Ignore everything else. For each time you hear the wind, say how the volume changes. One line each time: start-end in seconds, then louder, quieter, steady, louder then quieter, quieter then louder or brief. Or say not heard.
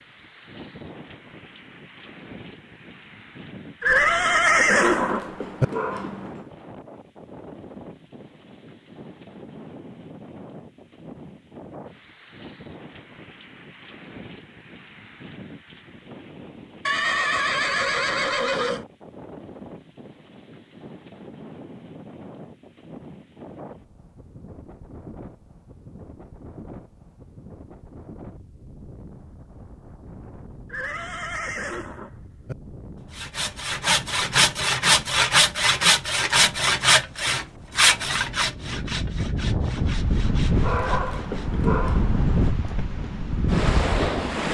0.0-44.5 louder.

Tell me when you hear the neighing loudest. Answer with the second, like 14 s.
5 s.